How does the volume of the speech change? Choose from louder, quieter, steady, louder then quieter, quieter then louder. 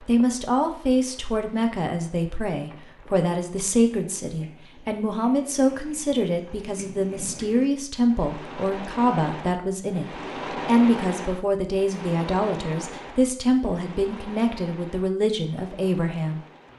steady.